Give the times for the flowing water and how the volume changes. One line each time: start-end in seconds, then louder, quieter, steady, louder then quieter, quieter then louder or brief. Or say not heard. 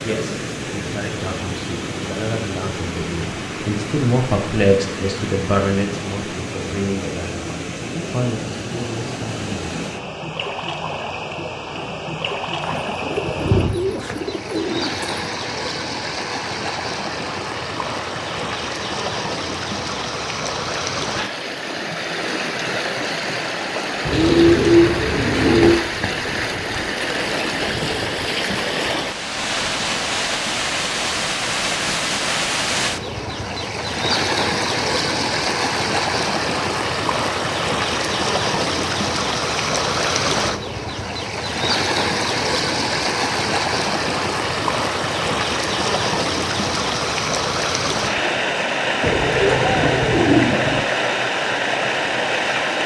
0.0-52.8 louder.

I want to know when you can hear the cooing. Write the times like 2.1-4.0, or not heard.
12.6-15.1, 24.1-25.9, 49.0-50.9.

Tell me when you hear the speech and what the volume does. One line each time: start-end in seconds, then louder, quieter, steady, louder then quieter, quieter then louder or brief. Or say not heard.
0.0-9.7 louder then quieter.